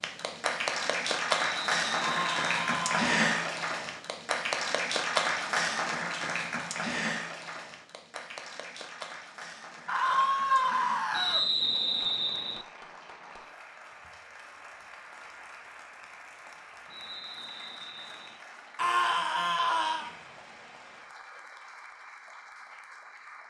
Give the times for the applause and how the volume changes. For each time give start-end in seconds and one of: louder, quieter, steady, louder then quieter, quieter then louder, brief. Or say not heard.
0.0-23.4 quieter.